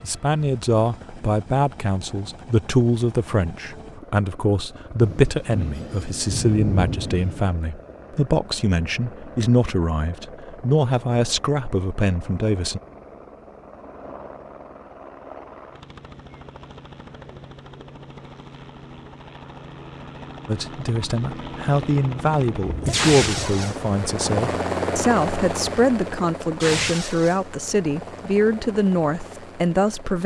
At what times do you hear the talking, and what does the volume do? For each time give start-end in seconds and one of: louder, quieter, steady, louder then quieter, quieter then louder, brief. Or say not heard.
0.0-12.8 steady
20.4-30.2 steady.